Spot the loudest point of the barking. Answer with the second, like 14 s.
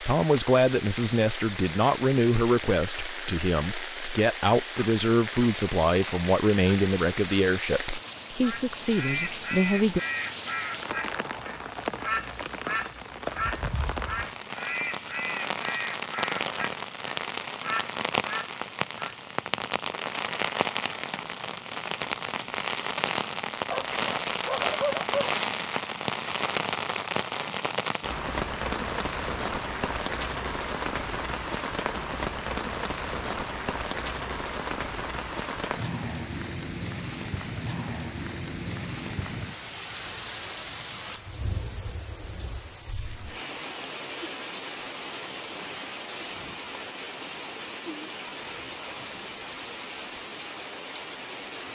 25 s.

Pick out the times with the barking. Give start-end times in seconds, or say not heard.
23.7-25.3.